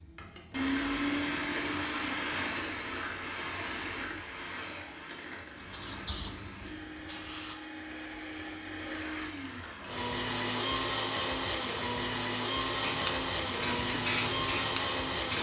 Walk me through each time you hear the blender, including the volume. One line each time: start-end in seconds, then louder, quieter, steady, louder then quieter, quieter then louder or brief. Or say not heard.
0.0-15.3 quieter then louder.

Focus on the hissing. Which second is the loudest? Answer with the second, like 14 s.
14 s.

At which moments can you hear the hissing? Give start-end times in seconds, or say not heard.
5.5-7.5, 12.8-15.3.